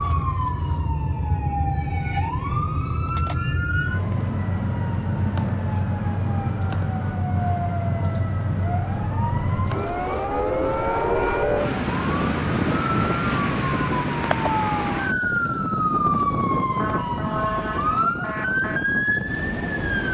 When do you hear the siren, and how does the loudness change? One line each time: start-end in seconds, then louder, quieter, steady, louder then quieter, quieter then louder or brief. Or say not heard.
0.0-20.0 steady.